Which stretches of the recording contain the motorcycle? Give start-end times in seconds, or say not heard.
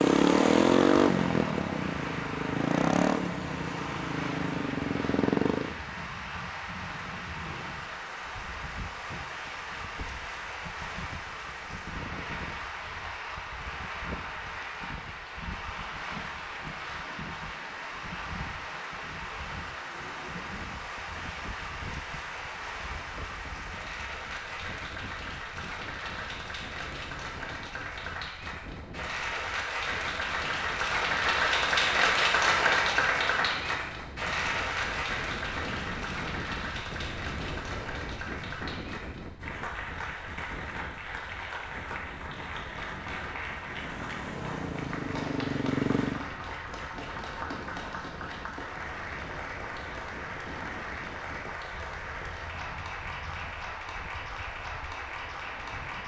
0.0-5.8, 43.7-46.2.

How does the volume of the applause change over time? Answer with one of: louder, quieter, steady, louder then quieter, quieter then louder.
louder then quieter.